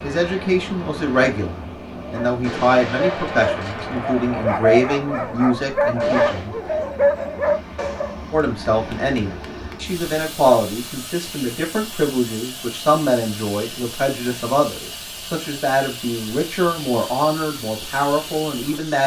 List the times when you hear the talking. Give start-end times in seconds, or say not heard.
0.0-6.5, 8.3-19.0.